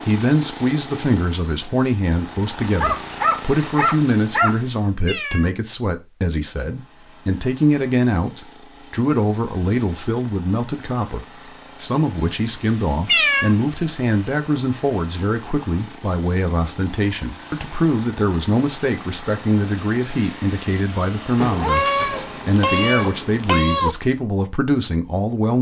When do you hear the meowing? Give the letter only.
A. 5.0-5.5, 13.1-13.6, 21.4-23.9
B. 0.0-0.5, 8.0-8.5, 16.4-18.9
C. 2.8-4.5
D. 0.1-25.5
A.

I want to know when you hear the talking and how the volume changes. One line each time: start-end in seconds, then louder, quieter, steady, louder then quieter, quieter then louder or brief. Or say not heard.
0.1-25.5 steady.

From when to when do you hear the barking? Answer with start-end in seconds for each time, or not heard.
2.8-4.5.